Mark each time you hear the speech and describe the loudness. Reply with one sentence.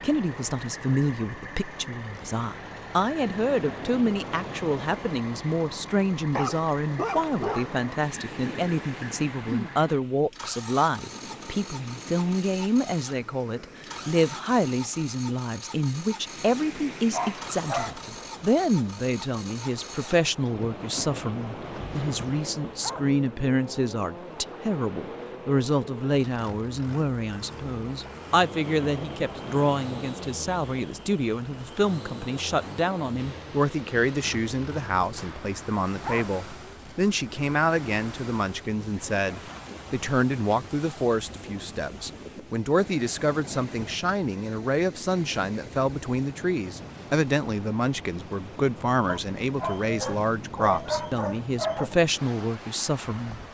You can hear the speech from 0.0 to 53.4 s, at a steady volume.